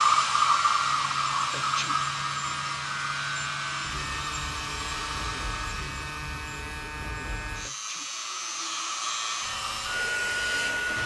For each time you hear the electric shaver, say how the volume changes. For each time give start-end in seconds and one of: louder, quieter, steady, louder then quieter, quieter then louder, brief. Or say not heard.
0.0-11.0 steady.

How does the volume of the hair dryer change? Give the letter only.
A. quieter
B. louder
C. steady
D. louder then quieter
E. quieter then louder
E.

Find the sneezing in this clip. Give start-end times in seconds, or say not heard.
1.5-1.9, 7.6-8.1.